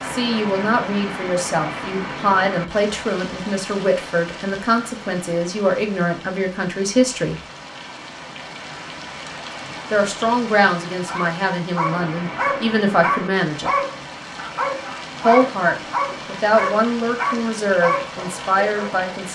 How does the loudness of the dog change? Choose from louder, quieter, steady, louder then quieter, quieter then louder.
steady.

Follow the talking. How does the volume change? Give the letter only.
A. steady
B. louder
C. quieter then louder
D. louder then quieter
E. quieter
A.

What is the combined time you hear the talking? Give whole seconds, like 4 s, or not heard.
15 s.